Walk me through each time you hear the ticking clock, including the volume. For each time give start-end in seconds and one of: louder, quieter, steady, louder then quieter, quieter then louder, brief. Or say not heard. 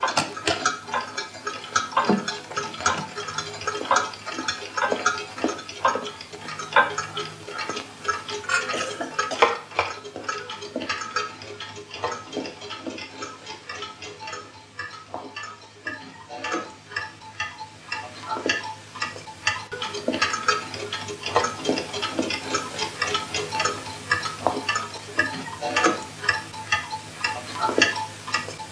0.0-28.6 quieter then louder.